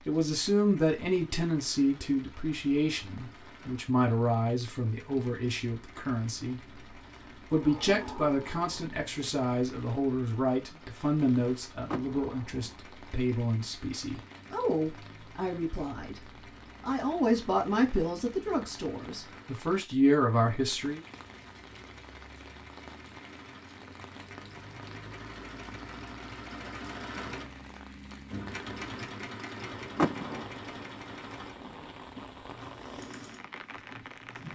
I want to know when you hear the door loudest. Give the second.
30 s.